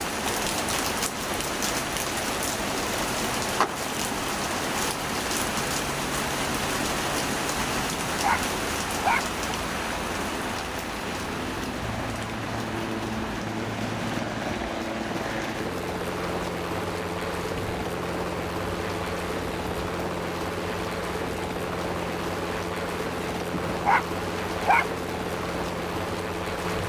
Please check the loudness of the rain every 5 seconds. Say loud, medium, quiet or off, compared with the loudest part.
loud, loud, medium, medium, medium, medium.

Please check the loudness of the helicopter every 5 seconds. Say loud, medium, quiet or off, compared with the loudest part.
medium, medium, loud, loud, loud, loud.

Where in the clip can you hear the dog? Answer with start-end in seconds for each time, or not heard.
7.9-9.2, 23.5-24.9.